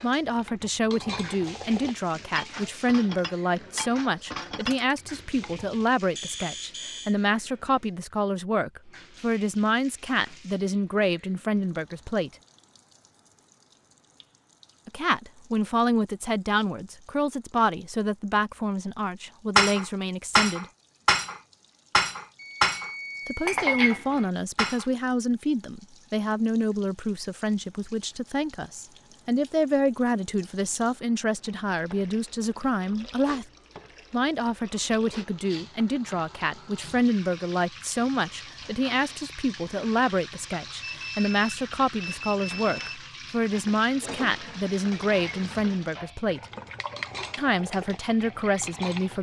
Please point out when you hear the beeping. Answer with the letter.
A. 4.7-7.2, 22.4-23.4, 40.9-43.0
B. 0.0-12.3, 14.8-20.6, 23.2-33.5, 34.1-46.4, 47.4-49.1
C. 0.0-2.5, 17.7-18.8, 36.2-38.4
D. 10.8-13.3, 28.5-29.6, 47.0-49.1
A.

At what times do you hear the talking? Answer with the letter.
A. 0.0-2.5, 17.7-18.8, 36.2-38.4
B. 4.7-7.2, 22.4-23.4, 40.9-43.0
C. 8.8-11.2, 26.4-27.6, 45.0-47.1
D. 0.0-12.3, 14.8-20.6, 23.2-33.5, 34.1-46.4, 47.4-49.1
D.